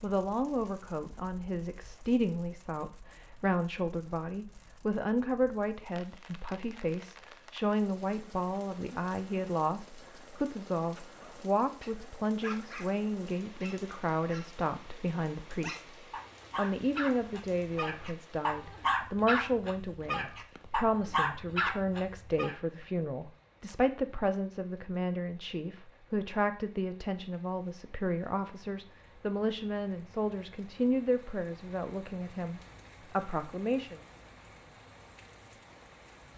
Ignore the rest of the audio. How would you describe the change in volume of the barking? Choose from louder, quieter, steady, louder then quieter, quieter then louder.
louder.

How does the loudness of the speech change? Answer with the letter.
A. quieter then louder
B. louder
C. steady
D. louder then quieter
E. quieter
C.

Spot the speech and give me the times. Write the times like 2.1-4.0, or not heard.
0.0-15.9, 16.6-34.0.